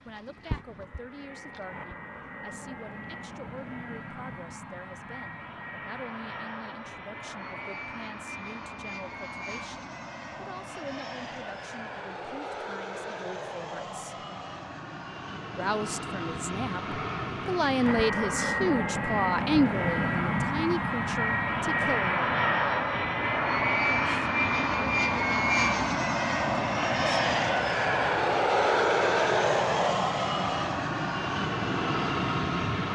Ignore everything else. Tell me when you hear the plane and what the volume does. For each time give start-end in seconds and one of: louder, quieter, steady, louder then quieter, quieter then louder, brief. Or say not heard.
0.0-32.8 louder.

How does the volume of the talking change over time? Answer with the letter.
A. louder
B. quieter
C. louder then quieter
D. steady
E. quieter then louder
A.